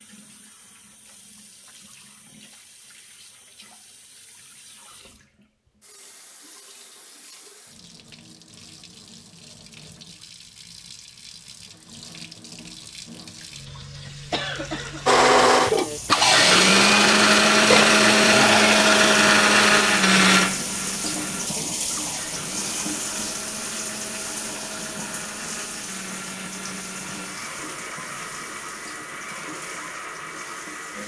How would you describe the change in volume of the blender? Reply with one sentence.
The volume of the blender goes down.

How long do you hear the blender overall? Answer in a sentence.
The blender can be heard for 16 seconds in total.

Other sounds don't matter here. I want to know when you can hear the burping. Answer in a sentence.
The burping can be heard from 17.7 to 18.8 s.